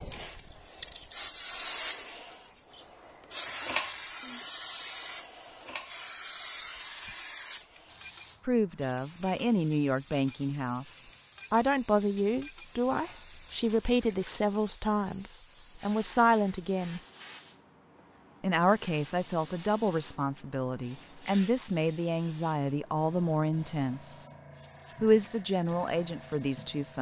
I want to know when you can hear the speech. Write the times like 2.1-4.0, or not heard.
8.4-17.0, 18.4-24.2, 25.0-26.9.